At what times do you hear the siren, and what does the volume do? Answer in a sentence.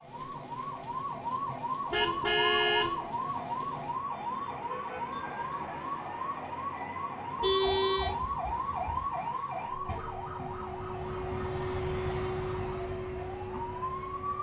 The siren can be heard from 0.0 to 14.3 s, getting quieter.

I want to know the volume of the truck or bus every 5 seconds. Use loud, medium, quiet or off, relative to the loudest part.
medium, medium, loud.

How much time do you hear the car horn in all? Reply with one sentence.
You can hear the car horn for 3 seconds altogether.